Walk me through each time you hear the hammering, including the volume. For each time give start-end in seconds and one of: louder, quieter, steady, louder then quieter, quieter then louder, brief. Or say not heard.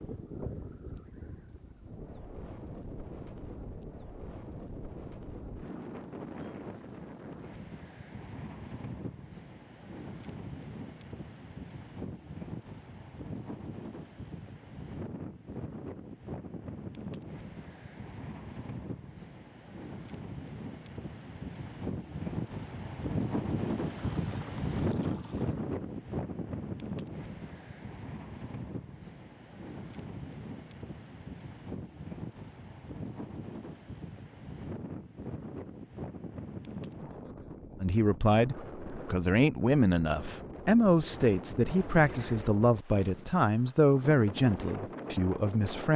not heard.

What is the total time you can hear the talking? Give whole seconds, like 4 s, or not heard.
8 s.